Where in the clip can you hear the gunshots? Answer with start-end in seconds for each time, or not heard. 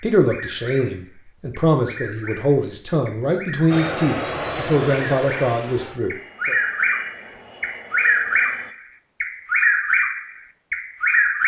not heard.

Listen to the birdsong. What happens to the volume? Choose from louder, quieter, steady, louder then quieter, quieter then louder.
louder.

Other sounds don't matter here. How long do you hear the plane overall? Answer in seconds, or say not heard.
5 s.